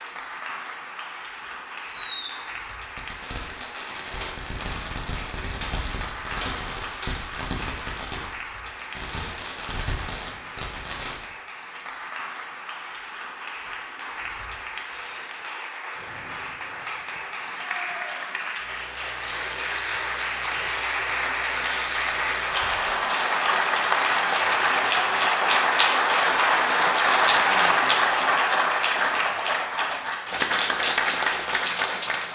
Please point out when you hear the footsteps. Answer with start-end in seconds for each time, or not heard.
not heard.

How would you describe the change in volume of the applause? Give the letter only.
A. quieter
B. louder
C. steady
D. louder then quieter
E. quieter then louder
B.